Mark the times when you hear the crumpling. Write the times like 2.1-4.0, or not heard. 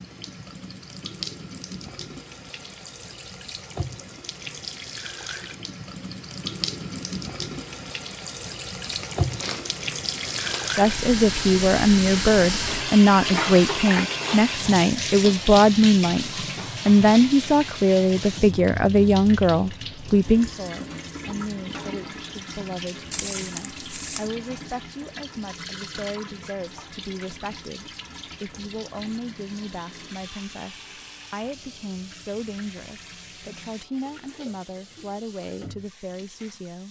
8.8-10.8, 23.1-24.3.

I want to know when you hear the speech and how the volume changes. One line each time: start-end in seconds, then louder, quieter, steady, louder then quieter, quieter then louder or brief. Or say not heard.
10.8-36.8 quieter.